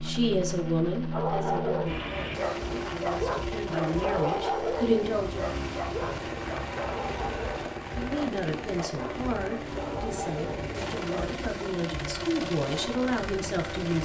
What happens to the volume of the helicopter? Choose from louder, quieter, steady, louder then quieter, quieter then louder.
steady.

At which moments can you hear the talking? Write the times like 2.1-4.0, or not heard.
0.0-5.5, 8.0-14.0.